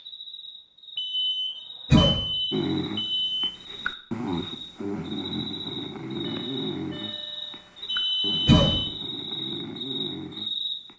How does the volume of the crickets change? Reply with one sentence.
The loudness of the crickets goes up.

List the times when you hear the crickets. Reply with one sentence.
The crickets can be heard from 0.0 to 10.8 s.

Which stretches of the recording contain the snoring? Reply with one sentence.
You can hear the snoring from 2.5 to 10.9 s.